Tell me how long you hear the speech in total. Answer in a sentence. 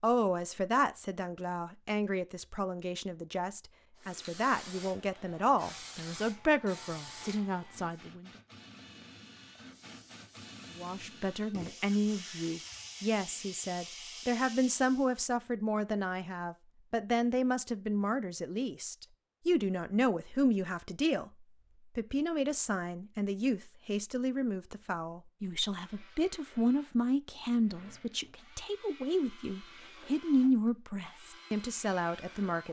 You can hear the speech for 30 seconds altogether.